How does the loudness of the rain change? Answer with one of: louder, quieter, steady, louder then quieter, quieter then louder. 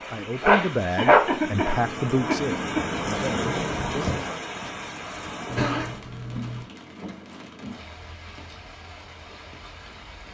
louder then quieter.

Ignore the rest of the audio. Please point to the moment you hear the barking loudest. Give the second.
1 s.